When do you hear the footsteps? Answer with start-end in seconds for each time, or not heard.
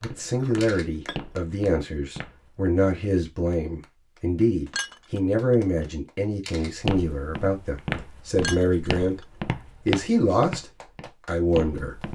0.0-2.5, 6.8-12.1.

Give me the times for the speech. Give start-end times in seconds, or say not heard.
0.0-12.1.